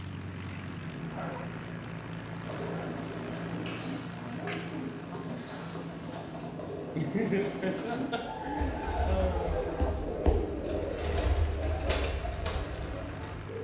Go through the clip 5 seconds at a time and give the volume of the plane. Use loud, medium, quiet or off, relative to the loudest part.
loud, medium, medium.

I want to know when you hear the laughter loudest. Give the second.
7 s.